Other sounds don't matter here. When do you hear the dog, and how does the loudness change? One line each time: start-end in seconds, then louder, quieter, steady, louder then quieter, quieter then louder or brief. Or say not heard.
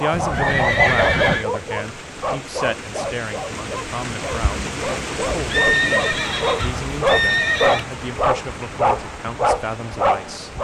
0.0-10.5 quieter then louder.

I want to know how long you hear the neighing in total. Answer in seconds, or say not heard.
4 s.